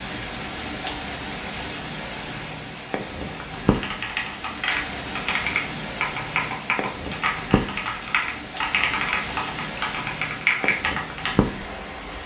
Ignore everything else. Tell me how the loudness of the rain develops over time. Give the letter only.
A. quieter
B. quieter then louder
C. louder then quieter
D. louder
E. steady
E.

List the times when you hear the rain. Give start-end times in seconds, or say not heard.
0.0-12.2.